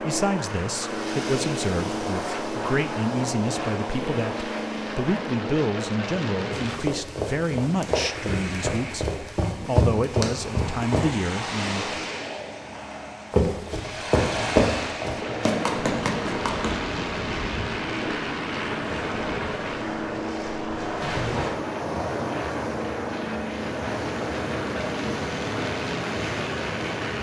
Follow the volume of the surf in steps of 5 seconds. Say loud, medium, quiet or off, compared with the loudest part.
medium, medium, loud, loud, loud, loud.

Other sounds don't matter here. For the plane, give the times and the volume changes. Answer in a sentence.
The plane can be heard from 0.0 to 6.8 s, at a steady volume; and from 15.2 to 27.1 s, at a steady volume.